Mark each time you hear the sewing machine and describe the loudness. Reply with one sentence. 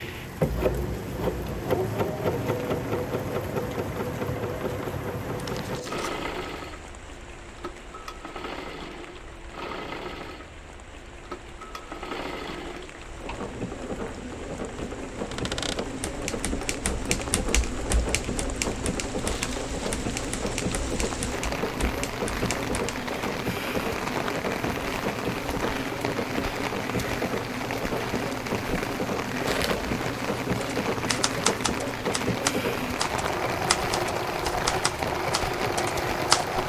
The sewing machine can be heard from 0.0 to 36.6 s, getting quieter then louder.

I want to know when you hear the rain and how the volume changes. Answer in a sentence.
You can hear the rain from 0.0 to 36.6 s, getting quieter then louder.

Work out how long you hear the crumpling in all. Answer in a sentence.
The crumpling can be heard for 2 seconds in total.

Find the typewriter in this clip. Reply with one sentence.
You can hear the typewriter from 15.3 to 23.1 s and from 30.6 to 36.5 s.